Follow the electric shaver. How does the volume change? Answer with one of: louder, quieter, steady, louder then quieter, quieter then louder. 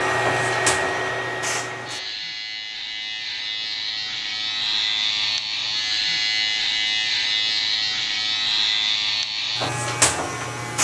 louder.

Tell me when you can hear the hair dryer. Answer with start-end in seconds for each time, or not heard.
0.0-2.1.